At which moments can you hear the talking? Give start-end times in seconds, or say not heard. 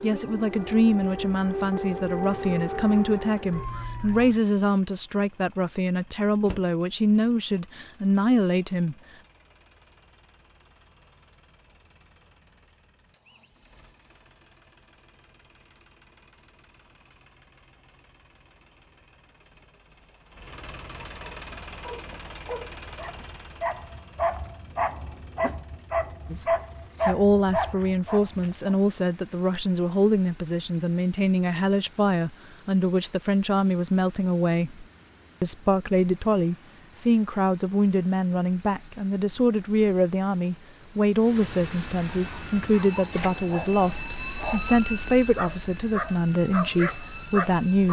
0.0-8.9, 26.3-47.8.